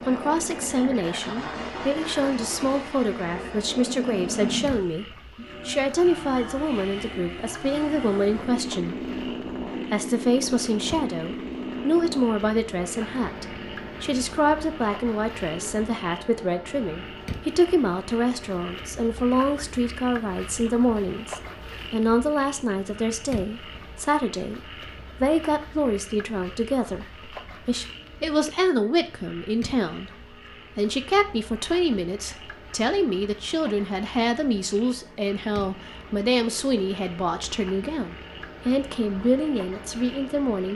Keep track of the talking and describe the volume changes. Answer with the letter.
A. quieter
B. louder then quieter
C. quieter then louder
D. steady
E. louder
D.